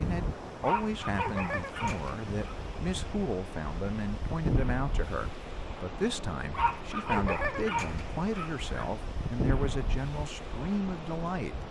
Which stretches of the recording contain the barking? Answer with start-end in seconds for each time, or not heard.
0.6-2.5, 6.5-8.8.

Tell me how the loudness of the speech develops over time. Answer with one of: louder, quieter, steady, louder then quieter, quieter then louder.
steady.